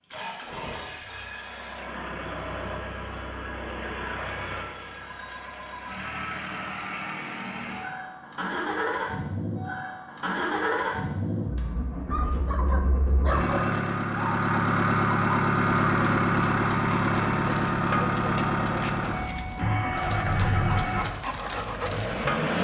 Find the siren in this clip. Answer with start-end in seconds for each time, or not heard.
not heard.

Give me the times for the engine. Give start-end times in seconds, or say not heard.
0.0-22.6.